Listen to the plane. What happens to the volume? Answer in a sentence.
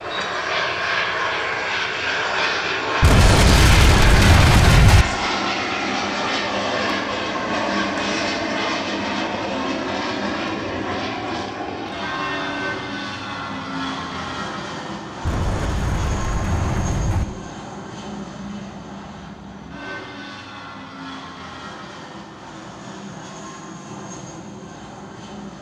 The volume of the plane goes down.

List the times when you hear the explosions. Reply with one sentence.
You can hear the explosions from 3.0 to 5.0 s and from 15.2 to 17.2 s.